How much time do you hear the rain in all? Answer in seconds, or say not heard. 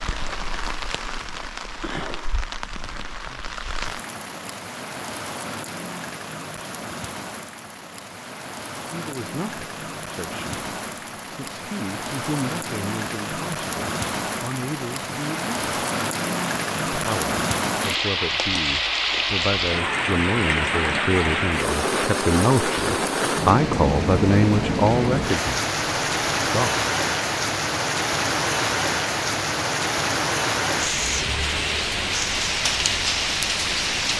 34 s.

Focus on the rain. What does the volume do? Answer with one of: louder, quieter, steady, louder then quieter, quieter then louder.
louder.